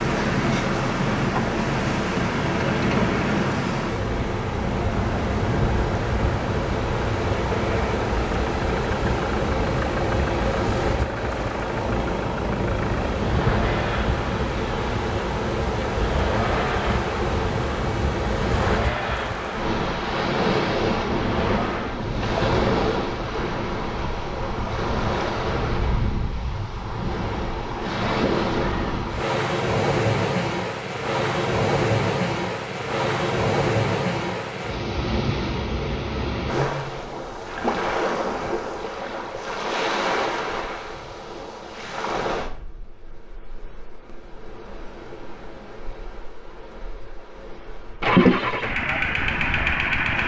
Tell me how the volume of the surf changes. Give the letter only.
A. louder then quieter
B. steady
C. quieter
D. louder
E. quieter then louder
C.